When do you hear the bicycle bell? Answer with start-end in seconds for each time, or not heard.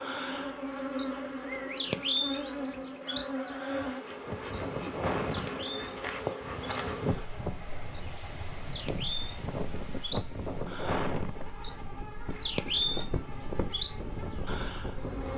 not heard.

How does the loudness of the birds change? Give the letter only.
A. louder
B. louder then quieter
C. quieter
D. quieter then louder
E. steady
D.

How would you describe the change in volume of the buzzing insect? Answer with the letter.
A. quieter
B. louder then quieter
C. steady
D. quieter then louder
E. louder
A.